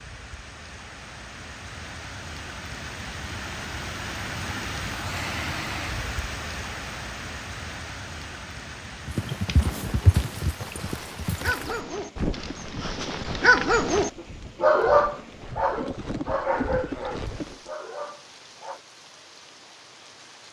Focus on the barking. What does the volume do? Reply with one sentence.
The volume of the barking goes up, then down.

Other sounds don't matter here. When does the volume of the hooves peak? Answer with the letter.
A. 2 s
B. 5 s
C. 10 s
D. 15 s
C.